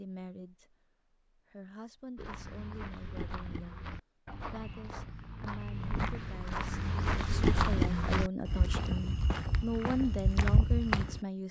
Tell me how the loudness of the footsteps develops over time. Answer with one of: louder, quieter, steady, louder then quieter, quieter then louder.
louder.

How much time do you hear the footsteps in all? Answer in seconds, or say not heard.
9 s.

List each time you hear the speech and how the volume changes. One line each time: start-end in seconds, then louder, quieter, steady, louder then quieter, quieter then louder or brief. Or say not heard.
0.0-11.4 louder.